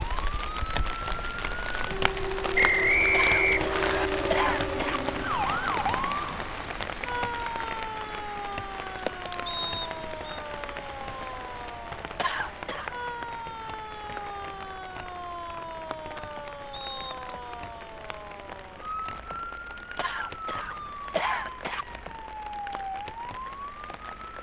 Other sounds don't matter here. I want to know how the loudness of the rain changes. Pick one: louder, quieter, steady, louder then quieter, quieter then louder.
quieter.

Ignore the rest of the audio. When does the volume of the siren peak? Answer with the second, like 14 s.
6 s.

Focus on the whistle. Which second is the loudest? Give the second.
3 s.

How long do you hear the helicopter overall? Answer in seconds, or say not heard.
not heard.